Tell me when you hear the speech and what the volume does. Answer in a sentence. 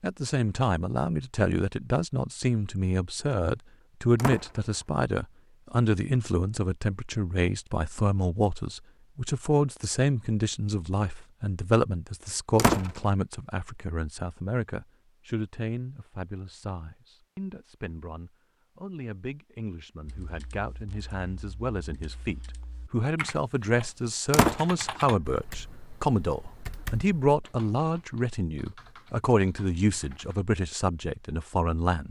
The speech can be heard from 0.0 to 32.0 s, getting quieter then louder.